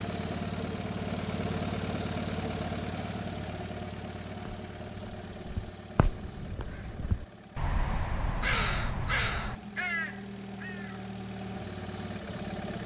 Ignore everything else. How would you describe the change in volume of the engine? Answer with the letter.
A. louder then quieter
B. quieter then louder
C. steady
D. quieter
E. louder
B.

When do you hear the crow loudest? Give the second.
9 s.